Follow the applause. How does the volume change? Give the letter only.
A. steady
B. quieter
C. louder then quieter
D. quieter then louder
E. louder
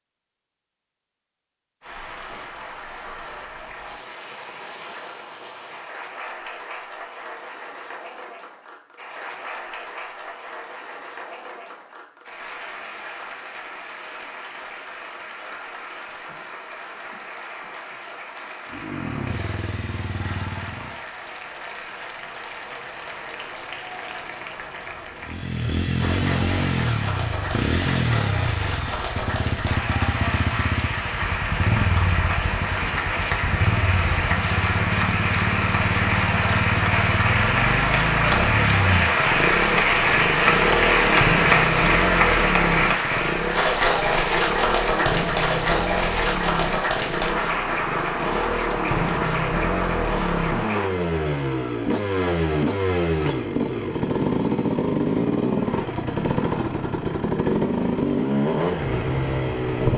E.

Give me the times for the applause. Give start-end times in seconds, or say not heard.
1.8-50.9.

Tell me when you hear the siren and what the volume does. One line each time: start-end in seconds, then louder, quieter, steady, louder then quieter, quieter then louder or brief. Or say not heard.
not heard.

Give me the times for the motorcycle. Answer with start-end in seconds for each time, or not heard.
18.7-21.0, 25.2-59.9.